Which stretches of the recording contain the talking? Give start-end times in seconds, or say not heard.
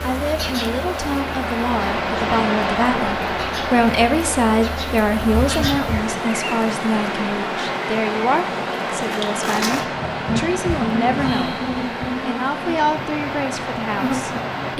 0.0-11.6, 12.2-14.7.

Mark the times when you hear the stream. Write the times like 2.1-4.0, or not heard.
0.0-14.7.